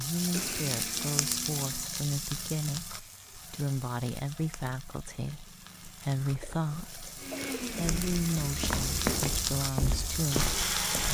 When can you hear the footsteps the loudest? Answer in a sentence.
The loudest moment of the footsteps is at 9 seconds.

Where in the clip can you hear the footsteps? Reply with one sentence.
You can hear the footsteps from 7.8 to 11.0 s.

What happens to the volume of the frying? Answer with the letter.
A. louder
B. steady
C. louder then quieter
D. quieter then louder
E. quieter
D.